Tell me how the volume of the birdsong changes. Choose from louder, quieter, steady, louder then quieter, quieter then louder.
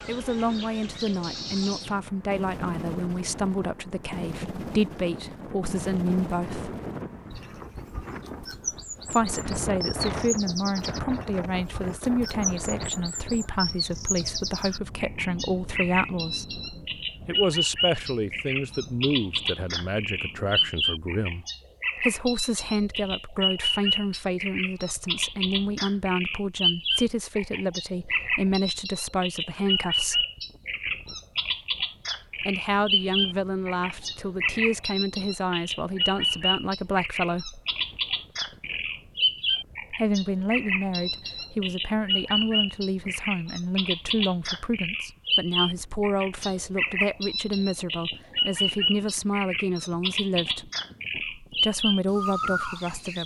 louder.